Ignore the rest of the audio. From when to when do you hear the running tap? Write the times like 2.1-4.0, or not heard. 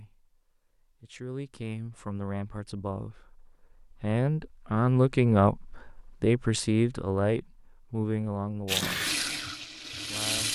8.7-10.5.